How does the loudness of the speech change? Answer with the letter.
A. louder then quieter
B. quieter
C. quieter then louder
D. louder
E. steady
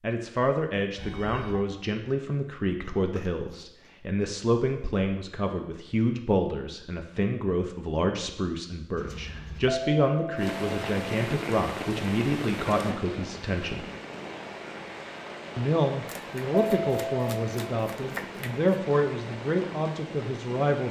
E.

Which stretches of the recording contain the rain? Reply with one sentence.
You can hear the rain from 10.3 to 20.8 s.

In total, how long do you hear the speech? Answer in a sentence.
You can hear the speech for 19 seconds altogether.